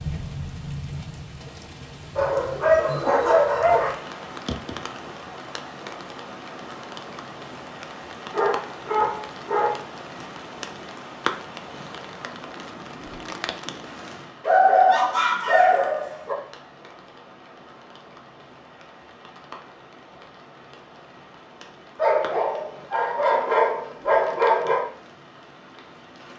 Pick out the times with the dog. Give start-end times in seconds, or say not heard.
2.1-4.0, 8.3-10.2, 14.4-16.4, 21.9-24.9.